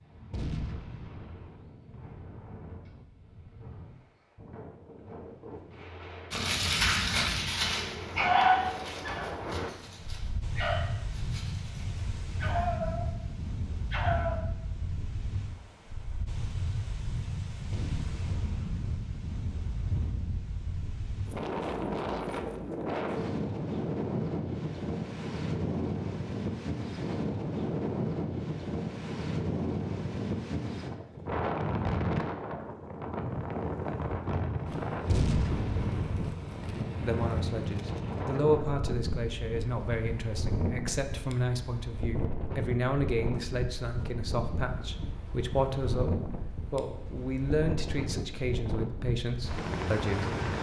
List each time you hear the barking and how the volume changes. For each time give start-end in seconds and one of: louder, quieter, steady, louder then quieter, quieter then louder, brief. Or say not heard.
6.3-13.1 quieter then louder
13.9-14.4 brief.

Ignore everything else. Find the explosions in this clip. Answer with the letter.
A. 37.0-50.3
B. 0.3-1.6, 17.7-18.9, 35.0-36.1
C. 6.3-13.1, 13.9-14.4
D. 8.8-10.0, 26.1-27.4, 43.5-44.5
B.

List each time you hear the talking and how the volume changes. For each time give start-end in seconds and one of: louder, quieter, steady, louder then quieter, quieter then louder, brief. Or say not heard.
37.0-50.3 steady.